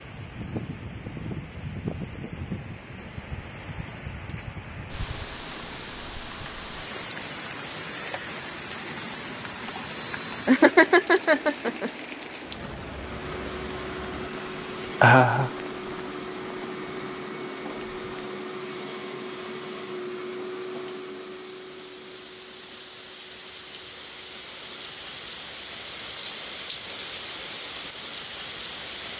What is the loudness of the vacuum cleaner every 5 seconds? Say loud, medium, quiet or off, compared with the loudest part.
off, off, loud, loud, medium, off.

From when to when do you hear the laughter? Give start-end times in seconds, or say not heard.
10.4-11.9, 15.0-15.5.